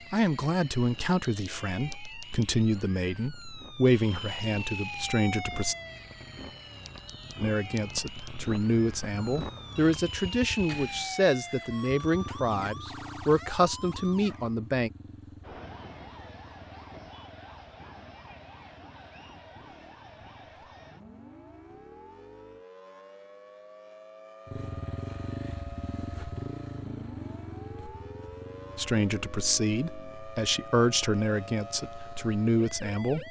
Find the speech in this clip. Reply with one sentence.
The speech can be heard from 0.1 to 5.8 s, from 7.4 to 14.9 s and from 28.8 to 33.2 s.